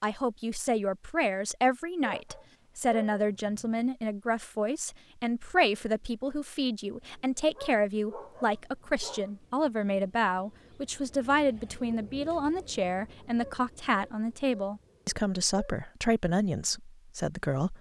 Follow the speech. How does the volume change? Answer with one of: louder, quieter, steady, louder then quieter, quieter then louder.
steady.